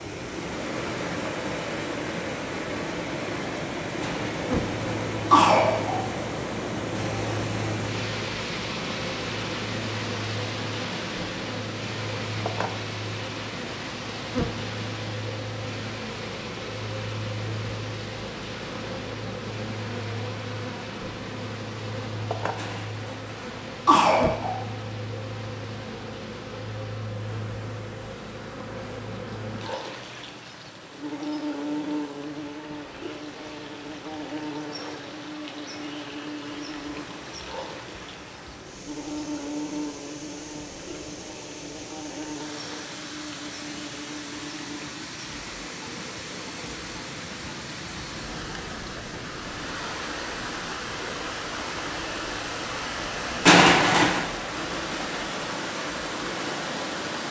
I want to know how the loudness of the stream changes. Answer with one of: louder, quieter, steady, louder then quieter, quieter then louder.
quieter then louder.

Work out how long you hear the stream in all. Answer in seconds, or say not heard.
57 s.